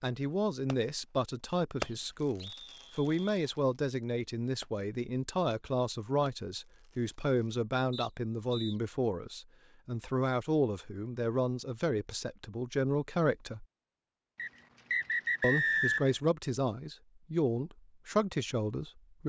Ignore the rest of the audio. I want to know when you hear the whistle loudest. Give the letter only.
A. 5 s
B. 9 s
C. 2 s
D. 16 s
D.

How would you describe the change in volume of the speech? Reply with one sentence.
The loudness of the speech stays about the same.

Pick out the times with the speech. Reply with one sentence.
You can hear the speech from 0.0 to 13.7 s and from 15.4 to 19.2 s.